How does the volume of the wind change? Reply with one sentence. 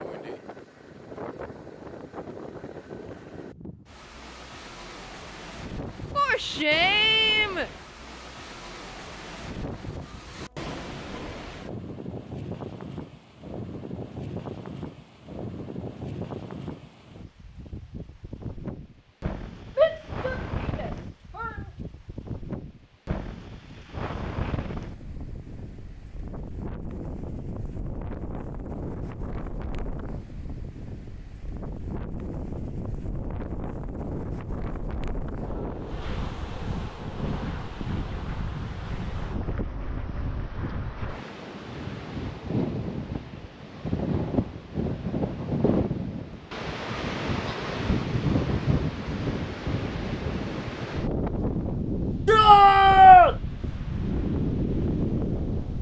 The loudness of the wind goes up.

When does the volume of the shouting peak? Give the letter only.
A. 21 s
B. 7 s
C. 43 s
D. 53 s
D.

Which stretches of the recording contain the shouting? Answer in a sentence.
The shouting can be heard from 6.2 to 7.7 s, from 19.8 to 21.6 s and from 52.2 to 53.4 s.